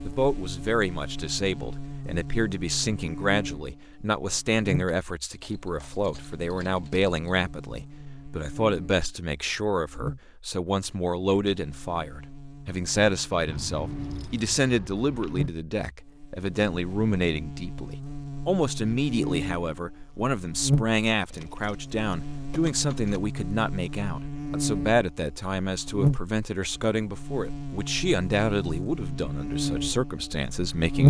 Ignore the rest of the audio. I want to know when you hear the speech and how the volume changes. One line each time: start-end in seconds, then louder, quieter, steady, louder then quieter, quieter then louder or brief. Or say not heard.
0.1-31.0 steady.